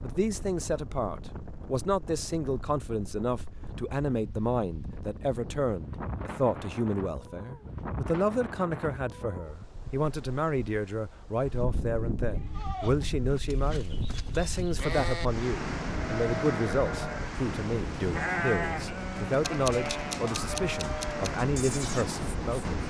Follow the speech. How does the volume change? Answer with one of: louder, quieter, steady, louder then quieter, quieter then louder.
steady.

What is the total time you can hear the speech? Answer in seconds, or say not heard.
23 s.